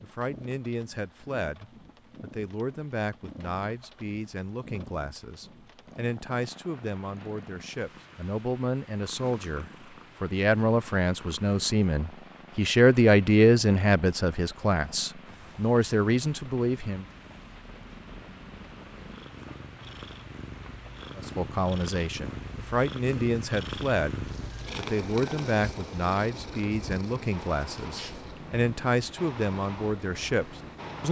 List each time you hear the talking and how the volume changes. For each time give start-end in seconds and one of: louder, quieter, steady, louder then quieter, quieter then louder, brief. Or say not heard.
0.0-17.1 louder
21.1-31.0 steady.